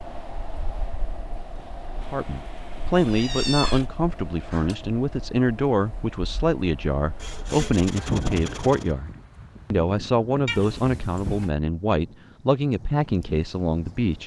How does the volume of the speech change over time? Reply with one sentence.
The loudness of the speech stays about the same.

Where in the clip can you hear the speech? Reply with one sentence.
The speech can be heard from 2.0 to 9.1 s and from 9.7 to 14.2 s.